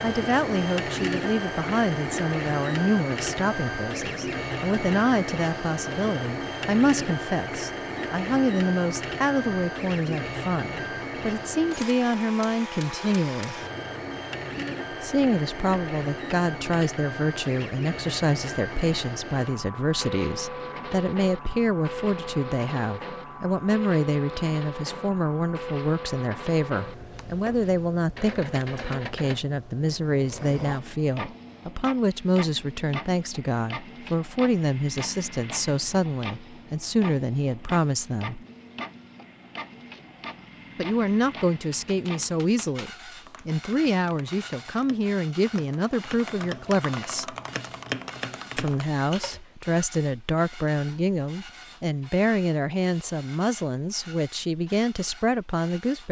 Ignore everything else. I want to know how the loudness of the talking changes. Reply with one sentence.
The volume of the talking stays about the same.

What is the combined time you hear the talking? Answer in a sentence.
The talking can be heard for 51 seconds in total.